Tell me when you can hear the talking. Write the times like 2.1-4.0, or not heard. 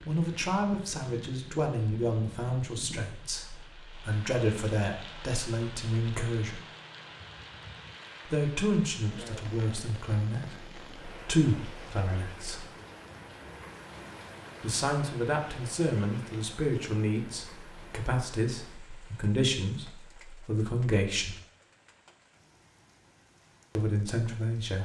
0.1-6.6, 8.2-12.7, 14.6-21.4, 23.8-24.8.